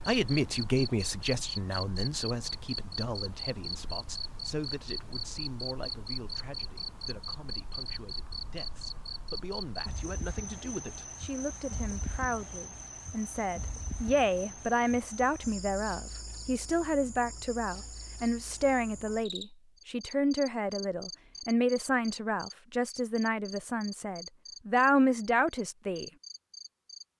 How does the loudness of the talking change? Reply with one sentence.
The volume of the talking goes down, then up.